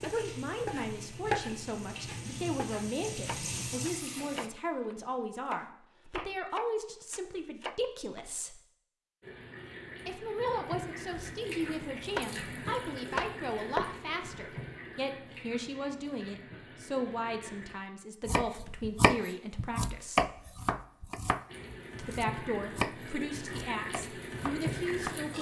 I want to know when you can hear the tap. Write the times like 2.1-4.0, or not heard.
0.0-4.5, 9.2-17.8, 21.4-25.3.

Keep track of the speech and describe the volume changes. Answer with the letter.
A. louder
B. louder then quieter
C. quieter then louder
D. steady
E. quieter
D.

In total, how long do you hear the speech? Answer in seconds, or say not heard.
22 s.